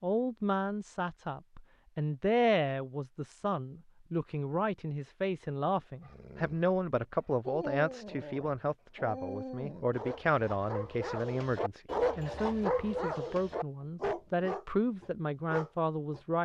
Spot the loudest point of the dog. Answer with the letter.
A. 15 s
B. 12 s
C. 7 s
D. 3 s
B.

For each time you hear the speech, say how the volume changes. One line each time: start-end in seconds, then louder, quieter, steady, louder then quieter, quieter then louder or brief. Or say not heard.
0.0-16.4 steady.